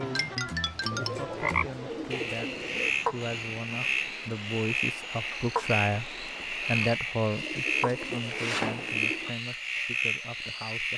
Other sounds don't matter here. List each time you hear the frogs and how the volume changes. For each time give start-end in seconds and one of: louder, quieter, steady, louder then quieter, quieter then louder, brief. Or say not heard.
0.0-10.9 steady.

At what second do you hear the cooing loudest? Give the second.
9 s.